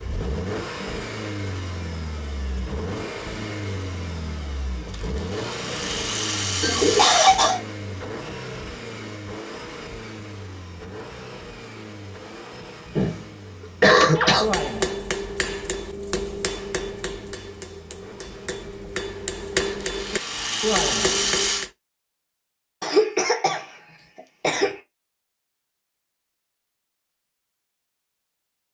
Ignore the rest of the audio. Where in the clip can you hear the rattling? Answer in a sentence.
You can hear the rattling from 4.9 to 7.4 s and from 19.8 to 21.7 s.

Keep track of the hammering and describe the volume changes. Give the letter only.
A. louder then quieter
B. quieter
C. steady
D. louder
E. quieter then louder
E.